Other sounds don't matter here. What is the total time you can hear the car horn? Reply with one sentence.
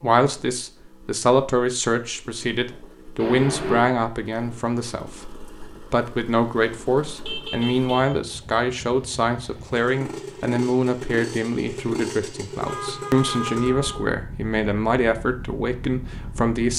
The car horn can be heard for 3 seconds in total.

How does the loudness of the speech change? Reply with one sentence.
The volume of the speech stays about the same.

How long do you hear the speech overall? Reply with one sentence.
The speech can be heard for 17 seconds in total.